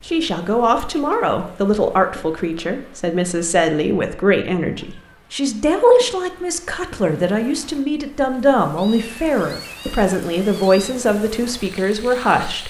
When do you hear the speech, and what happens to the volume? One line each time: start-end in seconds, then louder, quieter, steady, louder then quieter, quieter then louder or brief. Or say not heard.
0.1-12.6 steady.